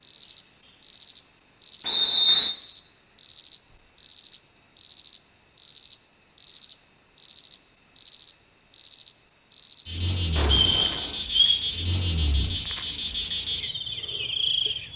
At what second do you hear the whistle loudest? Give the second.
2 s.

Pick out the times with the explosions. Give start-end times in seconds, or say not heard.
10.3-11.2.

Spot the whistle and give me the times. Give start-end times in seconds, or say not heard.
1.9-2.5, 10.5-11.6.